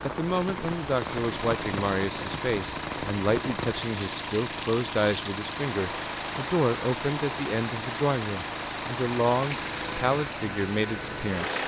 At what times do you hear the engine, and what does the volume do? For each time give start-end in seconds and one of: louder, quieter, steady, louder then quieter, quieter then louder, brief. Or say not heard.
0.0-11.6 steady.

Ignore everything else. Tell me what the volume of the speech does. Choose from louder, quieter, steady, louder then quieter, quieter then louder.
steady.